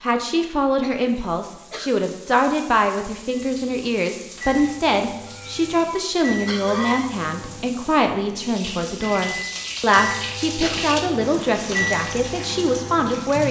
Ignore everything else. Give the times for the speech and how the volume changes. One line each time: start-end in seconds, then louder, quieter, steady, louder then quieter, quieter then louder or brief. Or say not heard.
0.0-13.4 steady.